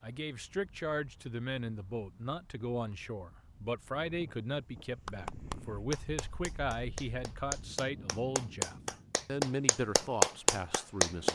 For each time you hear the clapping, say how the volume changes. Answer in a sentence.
You can hear the clapping from 5.0 to 11.3 s, getting louder.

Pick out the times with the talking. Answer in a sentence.
The talking can be heard from 0.0 to 11.3 s.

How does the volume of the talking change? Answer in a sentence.
The volume of the talking stays about the same.